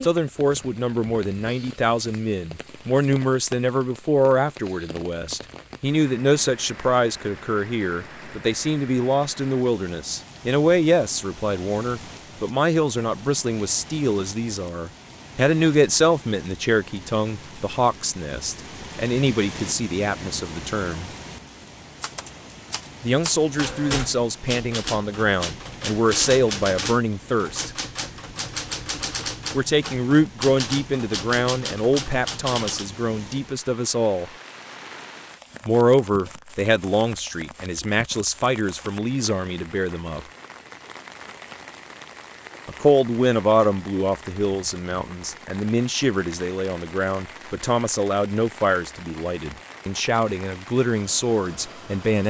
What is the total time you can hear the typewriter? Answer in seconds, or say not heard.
11 s.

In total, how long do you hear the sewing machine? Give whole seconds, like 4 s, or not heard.
not heard.